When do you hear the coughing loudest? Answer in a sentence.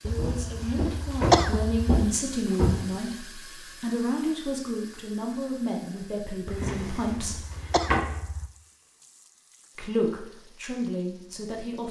The loudest moment of the coughing is at 1 second.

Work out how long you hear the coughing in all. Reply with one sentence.
The coughing can be heard for 4 seconds in total.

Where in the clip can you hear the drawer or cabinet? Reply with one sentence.
You can hear the drawer or cabinet from 0.1 to 2.9 s and from 6.6 to 8.2 s.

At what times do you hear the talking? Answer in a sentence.
The talking can be heard from 0.0 to 7.4 s and from 9.8 to 11.8 s.